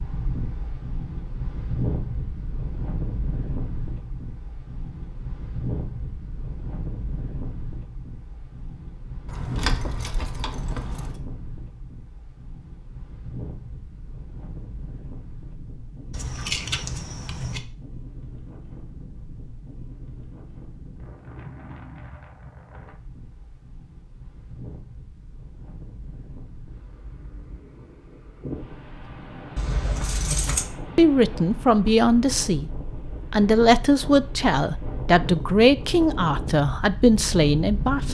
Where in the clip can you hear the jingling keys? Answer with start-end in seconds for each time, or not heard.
9.2-11.2, 16.1-17.6, 29.6-30.8.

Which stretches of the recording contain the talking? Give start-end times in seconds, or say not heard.
30.9-32.7, 33.3-38.0.